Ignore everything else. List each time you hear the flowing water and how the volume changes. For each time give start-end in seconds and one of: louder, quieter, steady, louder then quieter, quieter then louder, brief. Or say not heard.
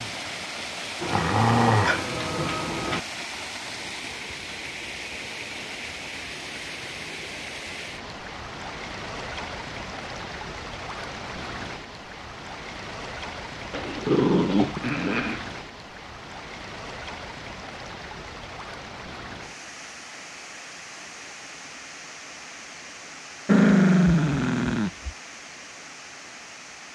0.0-26.9 quieter.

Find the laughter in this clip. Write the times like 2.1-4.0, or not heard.
not heard.